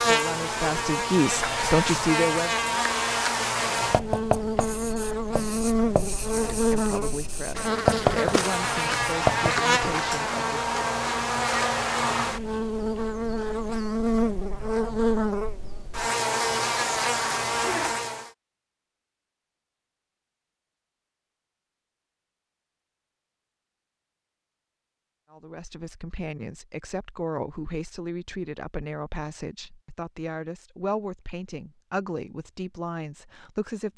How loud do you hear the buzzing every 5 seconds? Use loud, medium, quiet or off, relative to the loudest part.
loud, loud, loud, loud, off, off, off.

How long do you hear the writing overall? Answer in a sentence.
You can hear the writing for 6 seconds altogether.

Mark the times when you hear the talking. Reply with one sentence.
The talking can be heard from 0.0 to 2.9 s, from 6.2 to 10.8 s and from 25.3 to 33.9 s.